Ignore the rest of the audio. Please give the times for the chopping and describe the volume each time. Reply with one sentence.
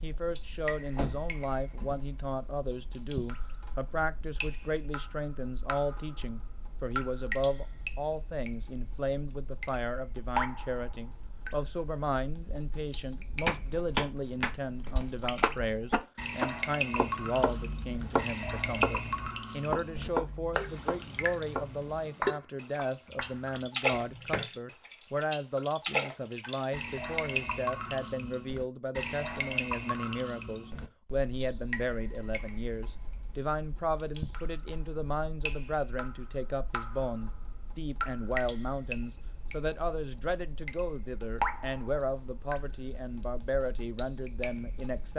The chopping can be heard from 13.4 to 24.4 s, getting quieter.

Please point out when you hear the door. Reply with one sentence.
The door can be heard from 0.9 to 1.9 s.